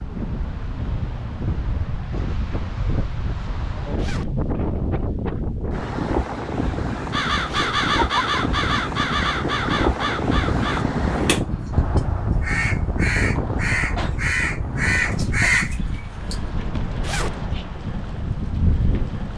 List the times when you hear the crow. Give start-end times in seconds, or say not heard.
7.0-16.4.